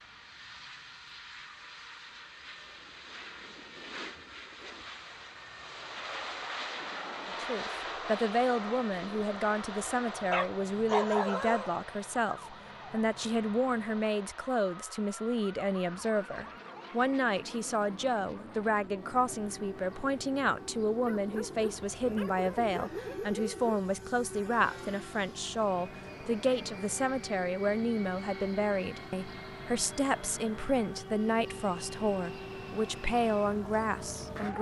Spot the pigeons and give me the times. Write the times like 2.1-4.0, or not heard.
not heard.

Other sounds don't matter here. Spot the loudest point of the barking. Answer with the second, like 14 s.
11 s.